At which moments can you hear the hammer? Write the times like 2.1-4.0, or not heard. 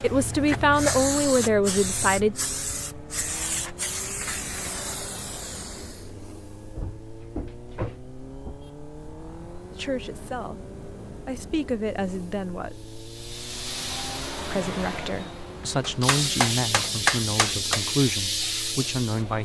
15.8-17.9.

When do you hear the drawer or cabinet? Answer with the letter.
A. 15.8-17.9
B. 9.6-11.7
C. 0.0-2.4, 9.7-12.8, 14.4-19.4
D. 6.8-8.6
D.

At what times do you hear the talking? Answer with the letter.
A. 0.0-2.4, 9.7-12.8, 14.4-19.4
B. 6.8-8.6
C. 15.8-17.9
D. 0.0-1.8
A.